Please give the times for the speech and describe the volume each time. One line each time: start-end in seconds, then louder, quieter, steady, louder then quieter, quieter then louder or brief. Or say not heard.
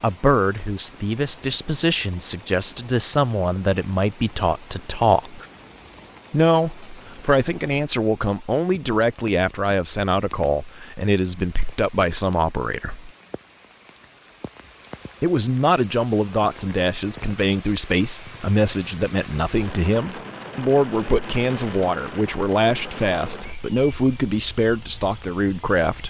0.0-5.5 steady
6.3-13.1 steady
15.2-26.0 steady.